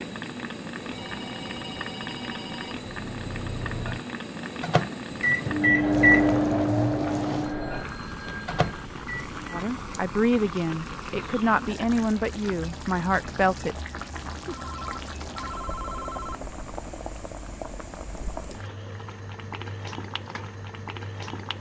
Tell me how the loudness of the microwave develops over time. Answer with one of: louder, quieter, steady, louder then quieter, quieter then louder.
louder then quieter.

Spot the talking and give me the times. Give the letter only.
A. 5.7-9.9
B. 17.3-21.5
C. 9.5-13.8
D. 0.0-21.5
C.